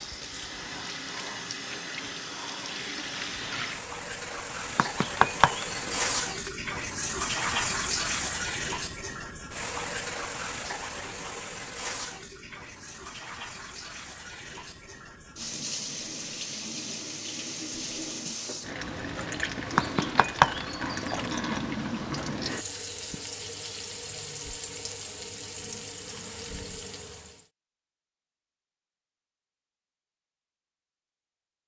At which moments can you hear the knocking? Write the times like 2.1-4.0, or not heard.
4.8-6.5, 19.8-21.1.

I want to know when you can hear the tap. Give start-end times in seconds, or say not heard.
0.0-27.4.